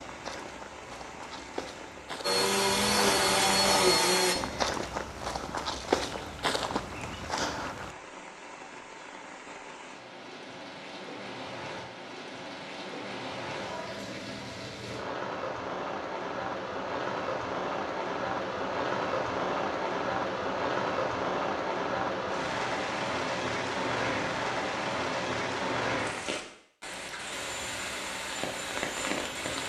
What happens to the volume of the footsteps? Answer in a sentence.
The loudness of the footsteps goes up.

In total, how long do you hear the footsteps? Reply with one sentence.
The footsteps can be heard for 8 seconds in total.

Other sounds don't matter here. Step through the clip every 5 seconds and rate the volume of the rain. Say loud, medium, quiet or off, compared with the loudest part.
quiet, quiet, medium, loud, loud, loud.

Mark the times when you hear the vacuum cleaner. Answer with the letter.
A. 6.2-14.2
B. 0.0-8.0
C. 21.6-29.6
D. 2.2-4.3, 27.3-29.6
D.